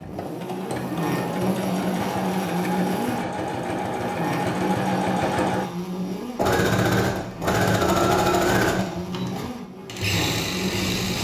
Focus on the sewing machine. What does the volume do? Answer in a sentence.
The volume of the sewing machine goes up, then down.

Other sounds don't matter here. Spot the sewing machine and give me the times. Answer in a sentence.
You can hear the sewing machine from 0.0 to 11.1 s.